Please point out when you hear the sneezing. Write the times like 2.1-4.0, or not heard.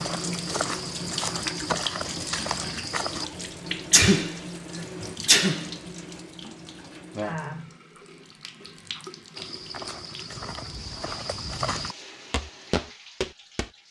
3.9-5.7.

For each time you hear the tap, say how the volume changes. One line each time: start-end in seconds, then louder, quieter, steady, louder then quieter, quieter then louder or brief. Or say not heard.
0.0-13.8 quieter.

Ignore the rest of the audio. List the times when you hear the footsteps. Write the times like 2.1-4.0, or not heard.
0.0-3.2, 9.3-13.7.